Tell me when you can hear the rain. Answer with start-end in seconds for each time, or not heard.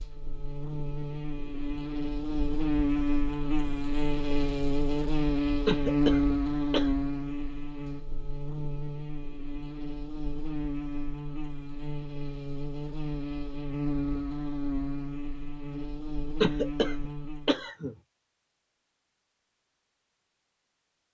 not heard.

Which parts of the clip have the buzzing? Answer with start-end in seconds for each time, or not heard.
0.0-17.6.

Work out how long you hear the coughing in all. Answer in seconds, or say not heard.
3 s.